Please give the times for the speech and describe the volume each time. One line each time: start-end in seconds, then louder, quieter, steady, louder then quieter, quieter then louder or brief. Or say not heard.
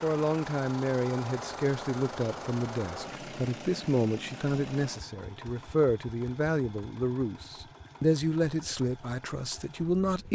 0.0-10.3 steady.